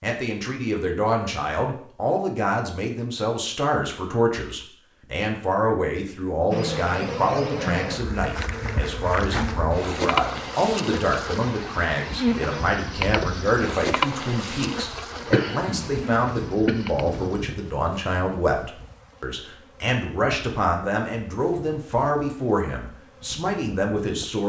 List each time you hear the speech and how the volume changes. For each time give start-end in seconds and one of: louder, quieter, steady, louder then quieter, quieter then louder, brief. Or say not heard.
0.0-24.4 steady.